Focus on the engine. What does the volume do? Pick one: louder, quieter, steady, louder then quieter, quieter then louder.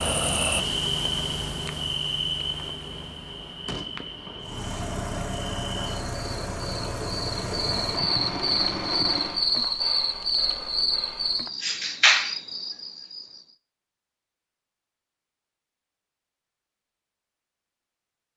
steady.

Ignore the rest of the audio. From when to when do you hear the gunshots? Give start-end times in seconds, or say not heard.
3.6-4.7.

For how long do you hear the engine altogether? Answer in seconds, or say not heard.
5 s.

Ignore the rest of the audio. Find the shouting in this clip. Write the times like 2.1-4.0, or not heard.
not heard.